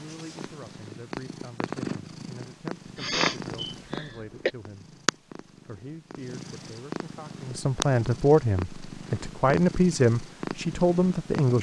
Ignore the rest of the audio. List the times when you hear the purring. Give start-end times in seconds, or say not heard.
0.0-11.5.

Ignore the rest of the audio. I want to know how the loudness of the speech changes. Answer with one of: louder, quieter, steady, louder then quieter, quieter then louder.
louder.